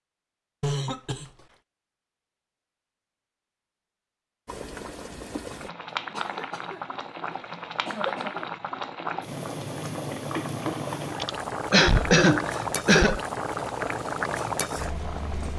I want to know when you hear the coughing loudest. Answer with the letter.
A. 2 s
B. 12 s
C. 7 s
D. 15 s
B.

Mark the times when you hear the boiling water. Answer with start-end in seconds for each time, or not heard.
4.5-15.5.